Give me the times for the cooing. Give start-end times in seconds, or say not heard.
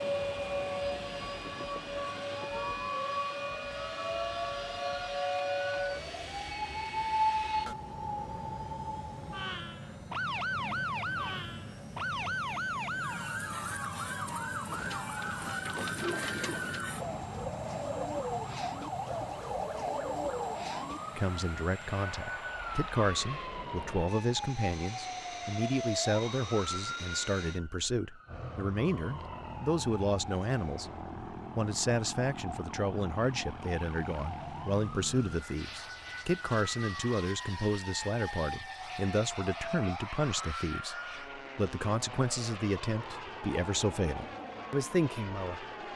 14.7-21.0.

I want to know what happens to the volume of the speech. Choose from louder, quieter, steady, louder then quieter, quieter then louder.
steady.